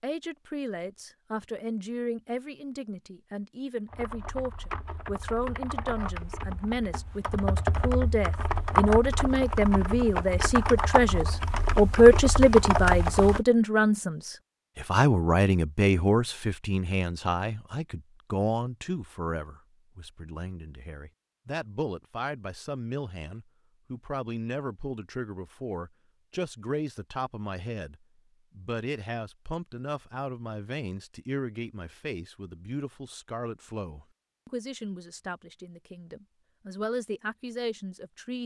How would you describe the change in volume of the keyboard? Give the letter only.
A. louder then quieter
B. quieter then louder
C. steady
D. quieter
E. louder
E.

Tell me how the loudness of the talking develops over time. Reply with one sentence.
The volume of the talking goes up, then down.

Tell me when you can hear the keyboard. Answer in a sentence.
You can hear the keyboard from 3.9 to 13.4 s.